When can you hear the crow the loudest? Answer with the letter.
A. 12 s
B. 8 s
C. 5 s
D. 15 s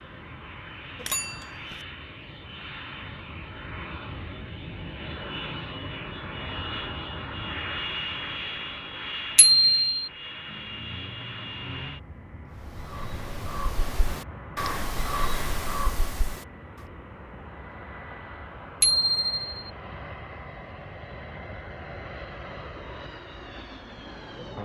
D.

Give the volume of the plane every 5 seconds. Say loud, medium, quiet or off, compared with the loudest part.
medium, loud, medium, medium, medium.